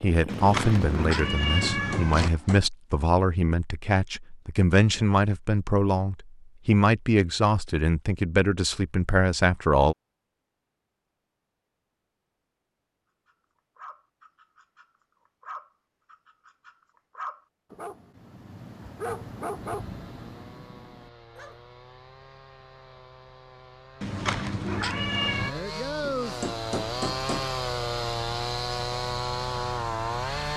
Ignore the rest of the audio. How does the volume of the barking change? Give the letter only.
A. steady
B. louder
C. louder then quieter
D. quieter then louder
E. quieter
C.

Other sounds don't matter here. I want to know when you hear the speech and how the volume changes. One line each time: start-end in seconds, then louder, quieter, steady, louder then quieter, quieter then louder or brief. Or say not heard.
0.0-9.9 steady.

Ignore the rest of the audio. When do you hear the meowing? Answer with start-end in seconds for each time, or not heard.
0.2-2.3, 24.0-25.6.